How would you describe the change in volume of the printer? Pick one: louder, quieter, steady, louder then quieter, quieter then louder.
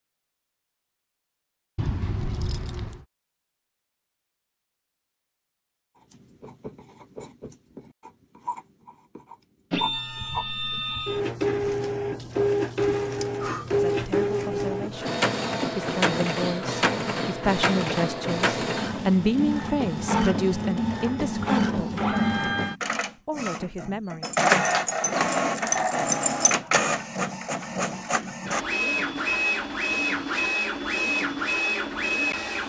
steady.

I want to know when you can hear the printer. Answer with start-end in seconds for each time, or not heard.
9.7-32.6.